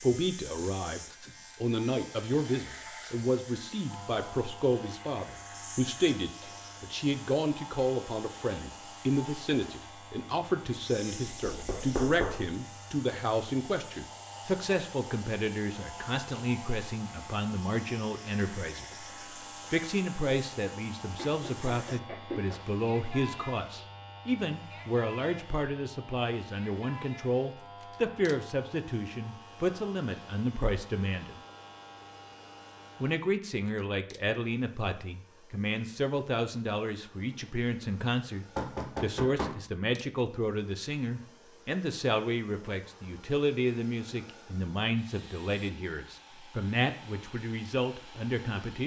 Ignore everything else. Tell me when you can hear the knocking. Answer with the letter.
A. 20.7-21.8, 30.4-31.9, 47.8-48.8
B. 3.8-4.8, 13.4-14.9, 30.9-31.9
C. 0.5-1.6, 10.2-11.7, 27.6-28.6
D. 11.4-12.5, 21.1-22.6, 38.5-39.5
D.